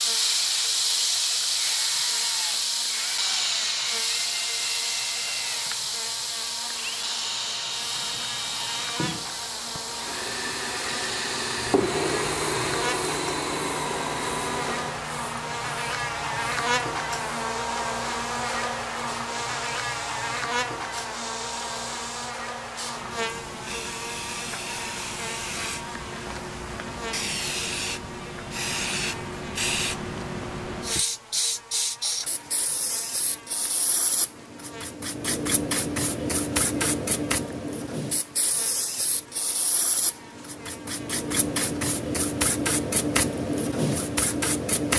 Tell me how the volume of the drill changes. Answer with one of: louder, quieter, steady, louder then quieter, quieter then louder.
louder.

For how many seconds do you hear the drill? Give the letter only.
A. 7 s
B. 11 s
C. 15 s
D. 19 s
C.